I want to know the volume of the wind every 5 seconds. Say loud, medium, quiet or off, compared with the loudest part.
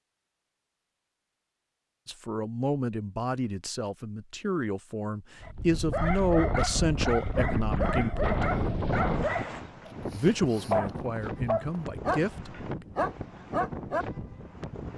off, loud, medium.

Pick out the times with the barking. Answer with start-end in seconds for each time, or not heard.
5.4-14.1.